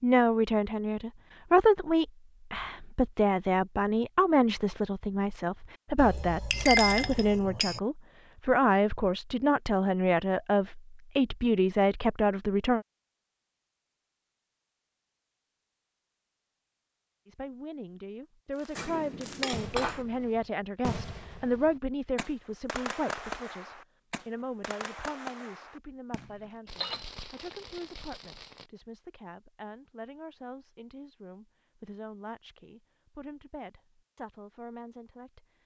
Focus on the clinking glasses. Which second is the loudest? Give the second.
7 s.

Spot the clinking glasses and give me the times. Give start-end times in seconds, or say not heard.
6.0-7.8, 18.8-20.1, 26.1-27.2.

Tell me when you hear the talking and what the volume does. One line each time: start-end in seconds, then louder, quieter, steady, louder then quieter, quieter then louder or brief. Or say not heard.
0.0-12.8 steady
17.2-35.5 quieter.